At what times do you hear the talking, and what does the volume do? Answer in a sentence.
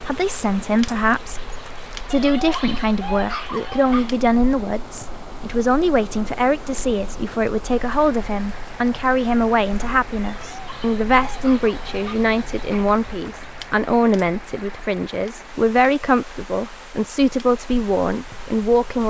You can hear the talking from 0.1 to 19.0 s, at a steady volume.